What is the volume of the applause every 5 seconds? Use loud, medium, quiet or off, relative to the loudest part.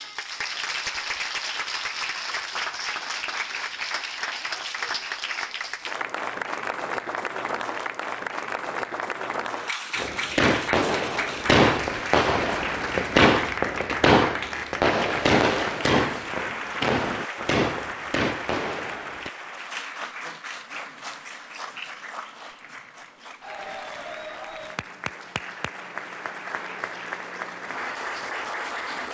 loud, loud, loud, loud, medium, loud.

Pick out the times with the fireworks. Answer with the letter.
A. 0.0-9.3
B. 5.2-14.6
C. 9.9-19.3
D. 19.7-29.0
C.